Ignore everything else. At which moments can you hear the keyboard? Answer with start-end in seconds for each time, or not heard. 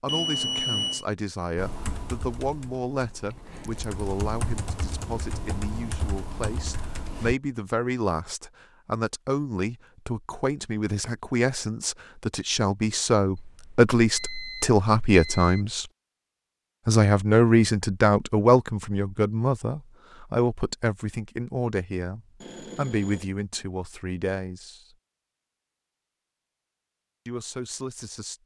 1.6-7.3.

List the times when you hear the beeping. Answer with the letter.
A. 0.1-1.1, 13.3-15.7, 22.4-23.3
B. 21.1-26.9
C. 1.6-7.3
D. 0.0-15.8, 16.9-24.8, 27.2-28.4
A.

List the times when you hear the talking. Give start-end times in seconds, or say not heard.
0.0-15.8, 16.9-24.8, 27.2-28.4.